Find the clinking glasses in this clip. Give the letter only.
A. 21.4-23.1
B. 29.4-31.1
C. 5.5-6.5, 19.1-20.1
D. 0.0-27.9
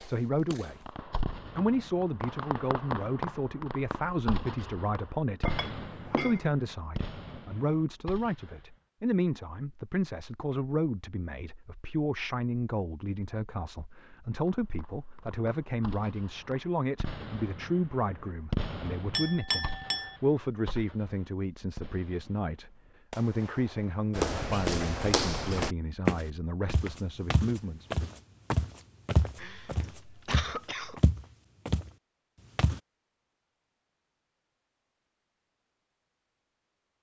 C.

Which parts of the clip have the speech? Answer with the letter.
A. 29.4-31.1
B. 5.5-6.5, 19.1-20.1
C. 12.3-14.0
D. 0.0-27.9
D.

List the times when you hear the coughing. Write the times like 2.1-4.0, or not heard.
29.4-31.1.